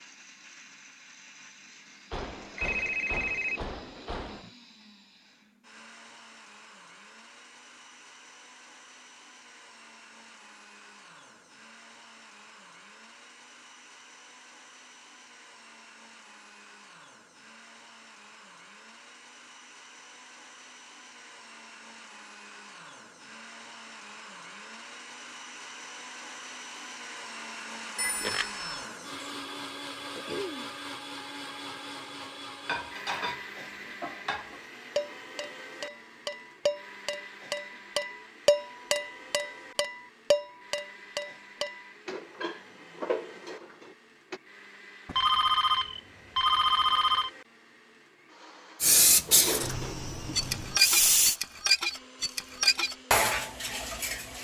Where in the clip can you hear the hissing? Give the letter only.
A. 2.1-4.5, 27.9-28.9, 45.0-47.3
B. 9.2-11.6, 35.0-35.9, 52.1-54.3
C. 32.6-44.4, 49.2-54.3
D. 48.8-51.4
D.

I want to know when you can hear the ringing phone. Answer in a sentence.
You can hear the ringing phone from 2.1 to 4.5 s, from 27.9 to 28.9 s and from 45.0 to 47.3 s.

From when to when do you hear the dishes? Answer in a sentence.
You can hear the dishes from 32.6 to 44.4 s and from 49.2 to 54.3 s.